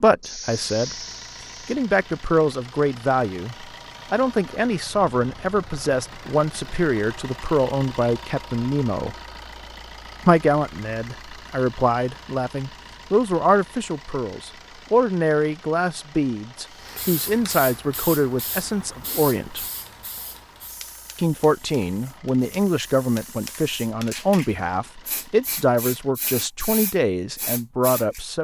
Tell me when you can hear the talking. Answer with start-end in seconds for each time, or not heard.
0.0-9.2, 10.2-19.6, 21.1-28.3.